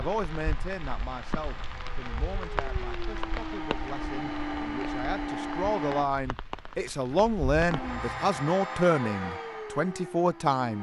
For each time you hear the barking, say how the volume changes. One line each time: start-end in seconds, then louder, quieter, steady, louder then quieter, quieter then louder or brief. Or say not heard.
not heard.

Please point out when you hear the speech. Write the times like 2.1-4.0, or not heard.
0.0-10.7.